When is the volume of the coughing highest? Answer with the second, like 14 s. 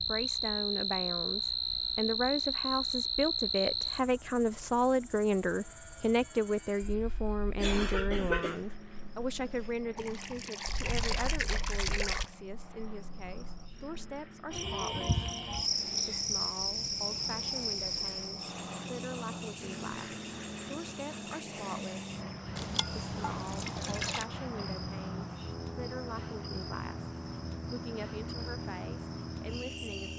8 s.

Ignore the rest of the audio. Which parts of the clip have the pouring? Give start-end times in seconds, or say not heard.
9.9-12.3, 22.6-24.3.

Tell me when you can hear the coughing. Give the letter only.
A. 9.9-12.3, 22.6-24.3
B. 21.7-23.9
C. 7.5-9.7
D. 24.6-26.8
C.